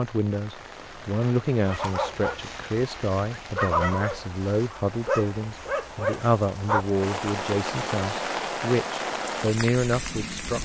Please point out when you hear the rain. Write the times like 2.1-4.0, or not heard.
0.0-10.6.